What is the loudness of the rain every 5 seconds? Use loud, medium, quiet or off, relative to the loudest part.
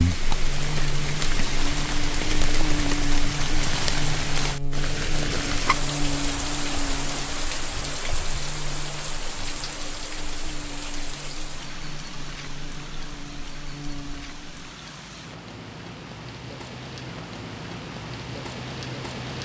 loud, loud, medium, medium.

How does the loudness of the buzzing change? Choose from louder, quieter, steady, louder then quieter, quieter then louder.
quieter.